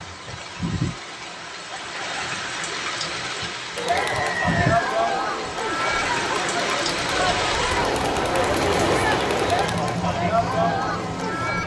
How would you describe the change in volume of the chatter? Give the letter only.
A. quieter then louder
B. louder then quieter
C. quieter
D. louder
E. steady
E.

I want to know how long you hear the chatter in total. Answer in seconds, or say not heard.
8 s.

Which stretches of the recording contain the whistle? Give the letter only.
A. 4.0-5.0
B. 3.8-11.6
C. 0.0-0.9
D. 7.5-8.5
A.